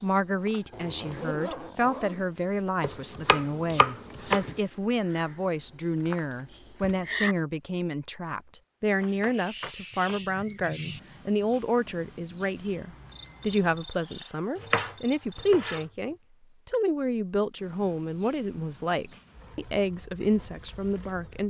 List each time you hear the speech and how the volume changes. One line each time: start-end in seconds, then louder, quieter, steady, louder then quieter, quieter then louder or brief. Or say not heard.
0.0-21.4 steady.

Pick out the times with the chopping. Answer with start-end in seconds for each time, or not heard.
2.8-4.5, 14.6-15.8.